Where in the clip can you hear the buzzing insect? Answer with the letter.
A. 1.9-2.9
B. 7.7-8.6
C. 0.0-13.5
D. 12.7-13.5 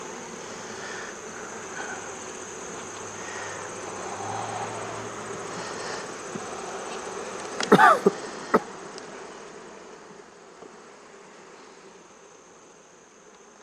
C.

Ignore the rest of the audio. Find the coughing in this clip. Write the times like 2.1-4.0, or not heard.
7.7-8.6.